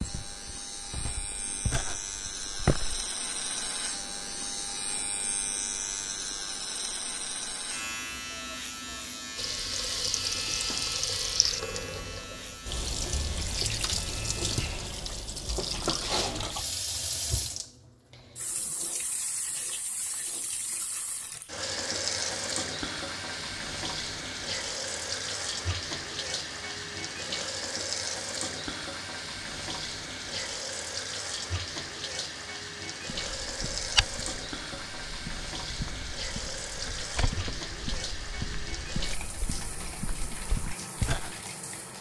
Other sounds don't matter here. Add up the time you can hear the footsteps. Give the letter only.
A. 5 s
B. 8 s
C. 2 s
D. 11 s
D.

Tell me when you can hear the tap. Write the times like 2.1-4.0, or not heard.
9.3-41.9.